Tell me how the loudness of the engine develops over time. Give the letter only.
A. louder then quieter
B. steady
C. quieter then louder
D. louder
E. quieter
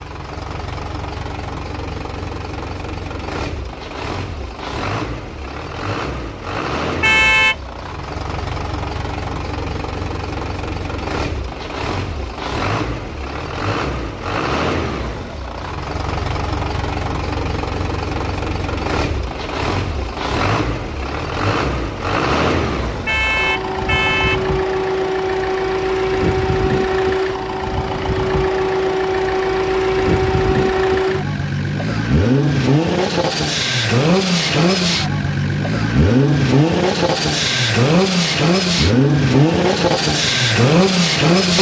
D.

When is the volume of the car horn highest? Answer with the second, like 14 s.
7 s.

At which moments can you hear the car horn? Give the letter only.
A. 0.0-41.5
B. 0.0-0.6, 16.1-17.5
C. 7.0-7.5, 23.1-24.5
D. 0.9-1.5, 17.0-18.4
C.